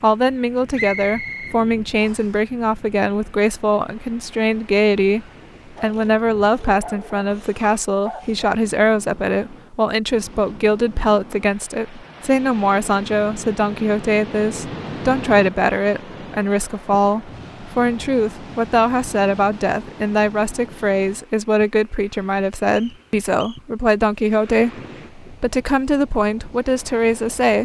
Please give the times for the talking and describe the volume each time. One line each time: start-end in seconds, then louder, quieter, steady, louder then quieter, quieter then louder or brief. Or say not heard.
0.0-27.6 steady.